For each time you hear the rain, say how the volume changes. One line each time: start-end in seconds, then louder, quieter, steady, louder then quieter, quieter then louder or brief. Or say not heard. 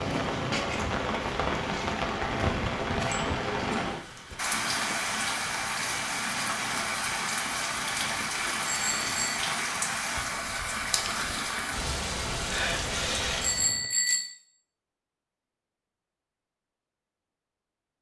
0.0-13.9 steady.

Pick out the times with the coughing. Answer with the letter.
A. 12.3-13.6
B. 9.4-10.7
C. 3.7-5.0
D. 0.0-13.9
C.